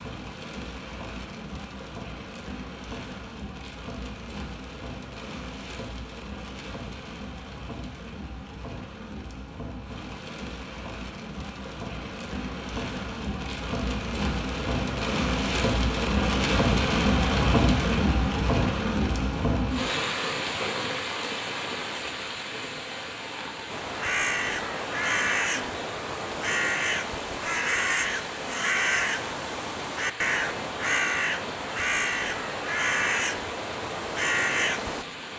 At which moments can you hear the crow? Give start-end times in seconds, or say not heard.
23.6-35.0.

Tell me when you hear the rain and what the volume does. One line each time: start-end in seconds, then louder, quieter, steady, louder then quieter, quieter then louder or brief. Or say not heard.
0.0-35.3 louder then quieter.